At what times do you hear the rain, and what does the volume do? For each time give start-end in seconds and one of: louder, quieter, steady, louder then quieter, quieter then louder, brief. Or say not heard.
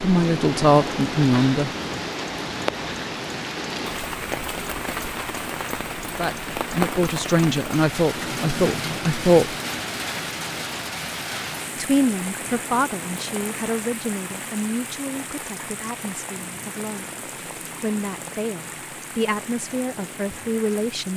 0.0-21.1 quieter.